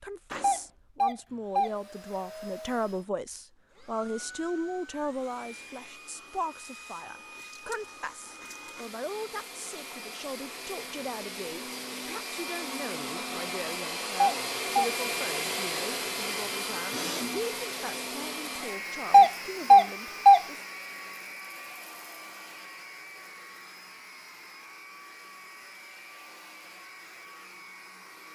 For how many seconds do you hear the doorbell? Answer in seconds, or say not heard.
3 s.